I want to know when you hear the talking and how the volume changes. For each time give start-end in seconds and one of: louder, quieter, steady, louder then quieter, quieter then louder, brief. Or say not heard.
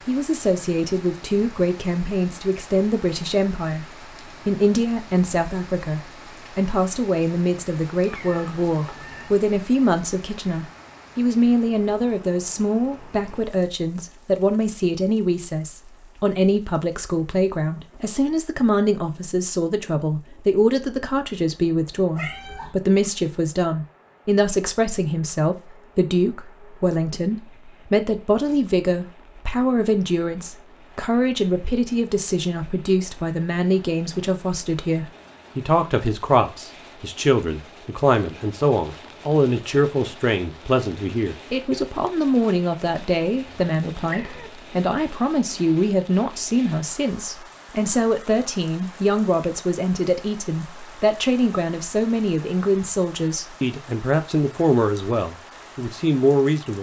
0.1-56.7 steady.